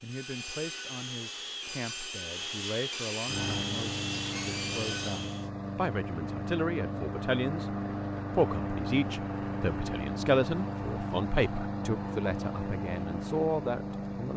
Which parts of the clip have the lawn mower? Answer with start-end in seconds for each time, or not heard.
3.2-14.3.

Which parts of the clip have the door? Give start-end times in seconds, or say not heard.
not heard.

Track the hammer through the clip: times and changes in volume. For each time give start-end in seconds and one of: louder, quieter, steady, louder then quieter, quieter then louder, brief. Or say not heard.
not heard.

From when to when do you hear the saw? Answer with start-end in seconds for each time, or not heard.
0.0-5.5.